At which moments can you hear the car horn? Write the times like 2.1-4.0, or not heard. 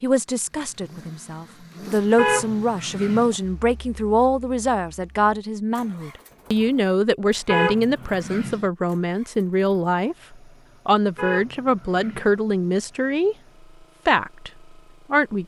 2.1-3.4, 7.5-8.7, 11.2-12.3.